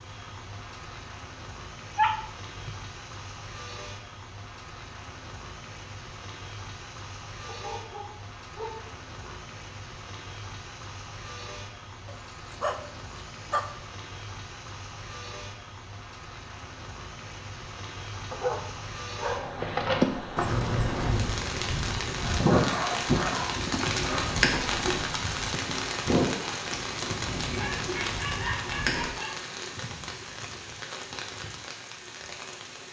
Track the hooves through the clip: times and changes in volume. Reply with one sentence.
You can hear the hooves from 19.6 to 29.1 s, getting quieter.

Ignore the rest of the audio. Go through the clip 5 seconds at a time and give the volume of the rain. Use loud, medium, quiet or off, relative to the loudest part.
medium, medium, medium, medium, loud, loud, medium.